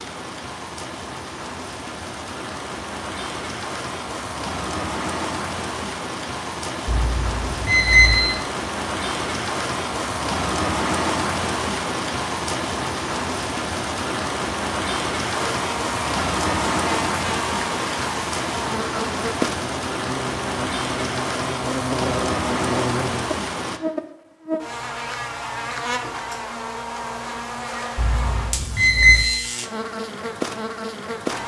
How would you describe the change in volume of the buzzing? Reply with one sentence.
The loudness of the buzzing stays about the same.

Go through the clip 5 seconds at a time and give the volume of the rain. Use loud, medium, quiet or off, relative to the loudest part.
medium, loud, loud, loud, loud, off, off.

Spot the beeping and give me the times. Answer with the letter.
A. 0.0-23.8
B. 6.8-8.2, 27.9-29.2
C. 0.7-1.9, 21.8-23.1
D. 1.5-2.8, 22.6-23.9
B.